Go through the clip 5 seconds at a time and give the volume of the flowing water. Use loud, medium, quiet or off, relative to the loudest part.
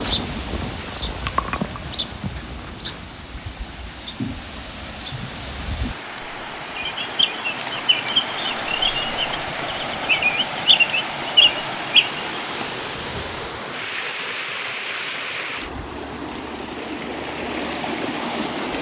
medium, loud, loud, loud.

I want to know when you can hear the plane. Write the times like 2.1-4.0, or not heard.
not heard.